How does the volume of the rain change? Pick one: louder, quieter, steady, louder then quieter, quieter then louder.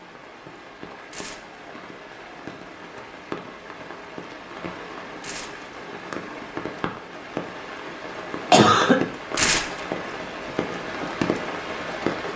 louder.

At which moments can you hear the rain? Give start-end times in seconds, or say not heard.
0.0-12.3.